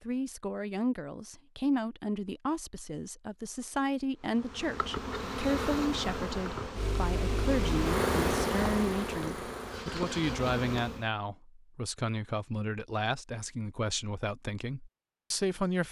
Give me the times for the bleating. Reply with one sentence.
The bleating can't be heard in this clip.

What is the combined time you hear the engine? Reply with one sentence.
You can hear the engine for 4 seconds altogether.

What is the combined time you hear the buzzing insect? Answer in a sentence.
You can hear the buzzing insect for 7 seconds altogether.